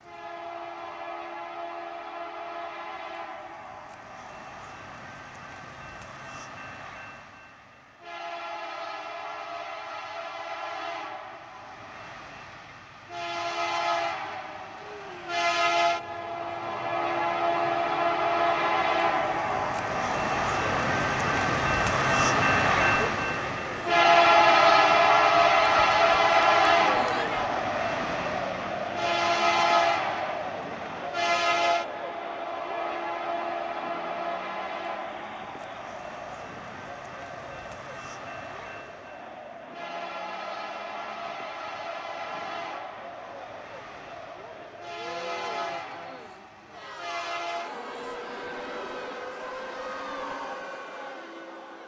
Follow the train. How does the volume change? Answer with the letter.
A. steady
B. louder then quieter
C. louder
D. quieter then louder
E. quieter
B.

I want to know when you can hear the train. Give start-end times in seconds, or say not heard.
0.0-51.8.